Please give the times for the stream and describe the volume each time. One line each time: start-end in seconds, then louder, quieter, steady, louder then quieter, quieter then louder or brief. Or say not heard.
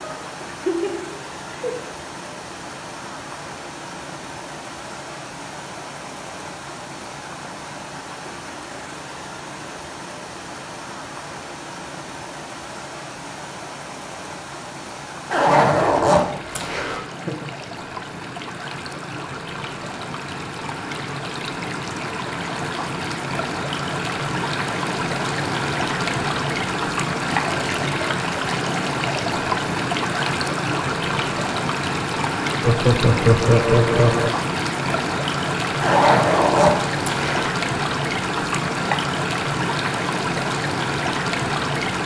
0.0-42.0 louder.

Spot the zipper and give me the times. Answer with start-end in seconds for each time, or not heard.
15.3-17.0, 35.8-37.5.